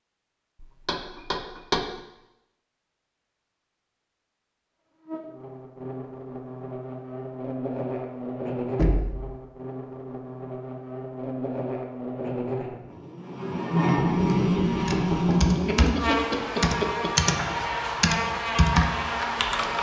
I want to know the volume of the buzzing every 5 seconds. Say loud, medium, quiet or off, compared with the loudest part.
off, medium, loud, loud.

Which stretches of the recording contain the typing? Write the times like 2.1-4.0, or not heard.
14.2-19.7.